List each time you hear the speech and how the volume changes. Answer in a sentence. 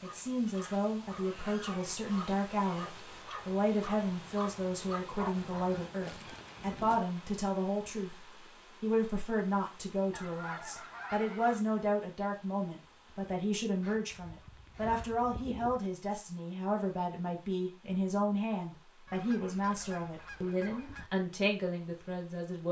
The speech can be heard from 0.0 to 22.6 s, at a steady volume.